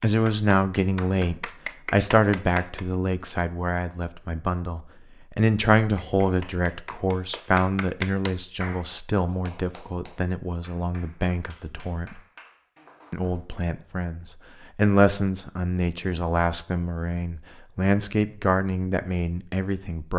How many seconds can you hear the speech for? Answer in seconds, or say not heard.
19 s.